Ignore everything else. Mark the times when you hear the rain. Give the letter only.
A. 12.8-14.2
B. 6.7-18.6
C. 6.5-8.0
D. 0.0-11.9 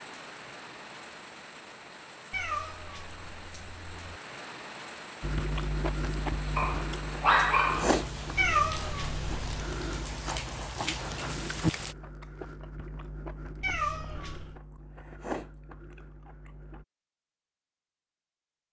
D.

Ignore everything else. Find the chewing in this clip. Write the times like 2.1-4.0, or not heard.
5.2-16.9.